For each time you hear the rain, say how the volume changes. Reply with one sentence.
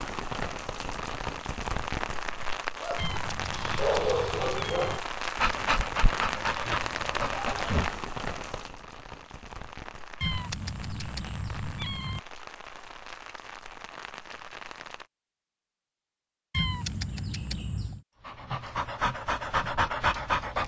The rain can be heard from 0.0 to 15.1 s, getting quieter.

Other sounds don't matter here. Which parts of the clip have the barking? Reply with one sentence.
The barking can be heard from 2.8 to 7.9 s and from 18.2 to 20.6 s.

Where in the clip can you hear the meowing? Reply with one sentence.
The meowing can be heard from 3.0 to 5.0 s, from 10.2 to 12.2 s and from 16.5 to 18.0 s.